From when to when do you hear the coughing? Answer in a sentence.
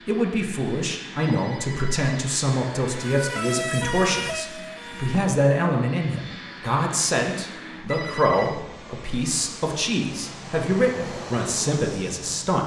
You can't hear the coughing here.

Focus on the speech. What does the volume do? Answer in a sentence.
The volume of the speech stays about the same.